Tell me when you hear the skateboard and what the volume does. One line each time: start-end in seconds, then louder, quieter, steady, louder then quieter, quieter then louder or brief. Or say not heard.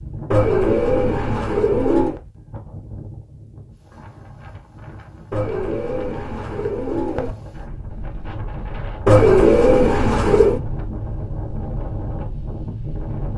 not heard.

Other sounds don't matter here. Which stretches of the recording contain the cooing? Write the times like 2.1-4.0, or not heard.
0.3-2.2, 5.3-7.3, 9.1-10.6.